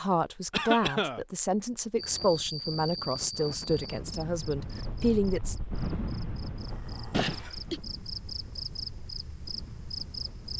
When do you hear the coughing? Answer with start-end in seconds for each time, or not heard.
0.5-1.2, 7.1-7.8.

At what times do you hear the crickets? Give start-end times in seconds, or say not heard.
1.9-10.5.